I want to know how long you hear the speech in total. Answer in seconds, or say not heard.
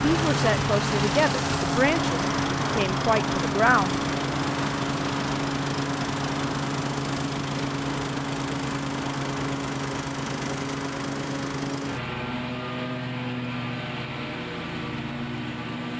4 s.